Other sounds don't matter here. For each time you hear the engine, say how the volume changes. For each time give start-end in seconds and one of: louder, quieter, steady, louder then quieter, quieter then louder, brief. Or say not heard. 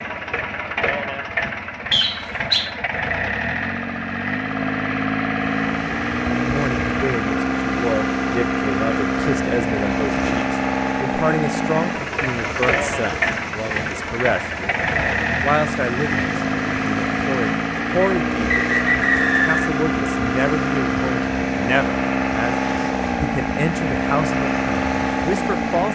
0.0-25.9 steady.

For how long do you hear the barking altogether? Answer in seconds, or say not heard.
not heard.